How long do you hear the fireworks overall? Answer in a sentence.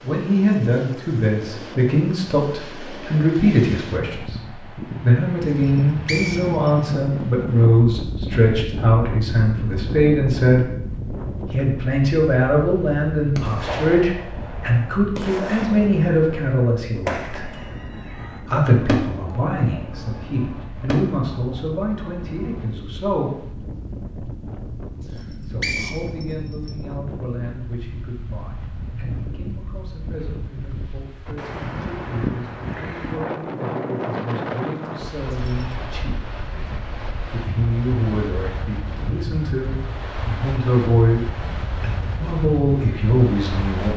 The fireworks can be heard for 9 seconds in total.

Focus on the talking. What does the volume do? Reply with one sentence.
The loudness of the talking goes down, then up.